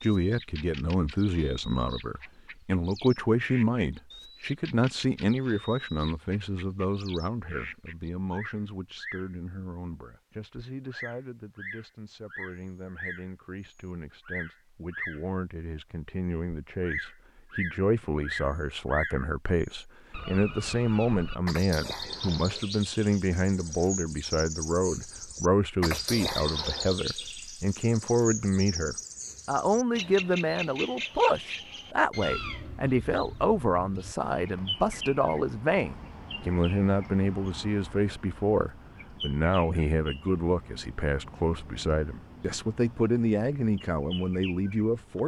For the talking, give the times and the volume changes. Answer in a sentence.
You can hear the talking from 0.0 to 45.2 s, getting quieter then louder.